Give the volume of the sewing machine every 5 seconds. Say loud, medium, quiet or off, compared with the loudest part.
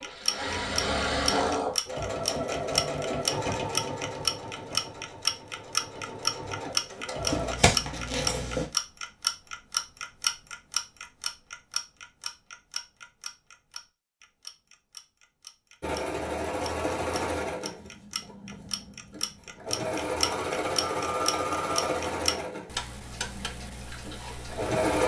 loud, medium, off, loud, loud.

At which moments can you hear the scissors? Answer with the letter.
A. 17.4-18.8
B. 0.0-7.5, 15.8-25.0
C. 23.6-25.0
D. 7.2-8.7
D.